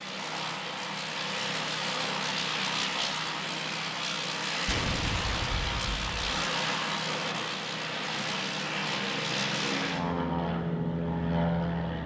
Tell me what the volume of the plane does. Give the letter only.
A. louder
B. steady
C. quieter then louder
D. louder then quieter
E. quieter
B.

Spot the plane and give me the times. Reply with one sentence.
You can hear the plane from 0.0 to 12.0 s.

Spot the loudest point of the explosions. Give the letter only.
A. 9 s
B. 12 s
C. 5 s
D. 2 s
C.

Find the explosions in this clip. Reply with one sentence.
The explosions can be heard from 4.7 to 6.2 s.